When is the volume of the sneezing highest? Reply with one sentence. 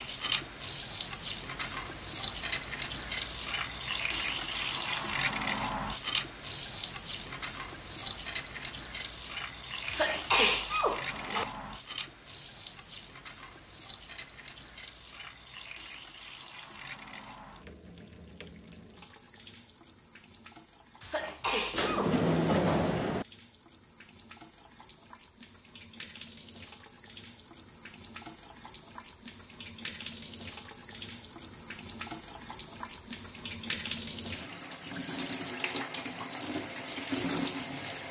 The loudest moment of the sneezing is at 10 seconds.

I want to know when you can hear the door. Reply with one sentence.
You can hear the door from 21.7 to 23.2 s.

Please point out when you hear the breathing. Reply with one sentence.
You can't hear the breathing here.